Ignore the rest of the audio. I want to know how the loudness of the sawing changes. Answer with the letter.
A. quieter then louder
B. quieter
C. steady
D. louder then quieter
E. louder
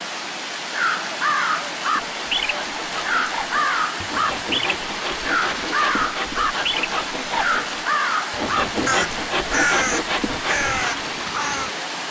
E.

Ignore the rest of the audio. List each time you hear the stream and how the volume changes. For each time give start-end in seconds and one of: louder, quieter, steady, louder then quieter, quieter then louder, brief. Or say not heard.
0.0-12.0 steady.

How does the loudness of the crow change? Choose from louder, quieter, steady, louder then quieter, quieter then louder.
steady.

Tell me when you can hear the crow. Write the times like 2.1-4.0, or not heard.
0.7-11.7.